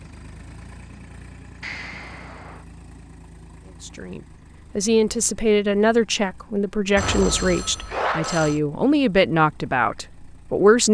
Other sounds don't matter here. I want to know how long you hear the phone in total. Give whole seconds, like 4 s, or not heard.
3 s.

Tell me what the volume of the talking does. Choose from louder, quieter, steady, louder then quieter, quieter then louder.
steady.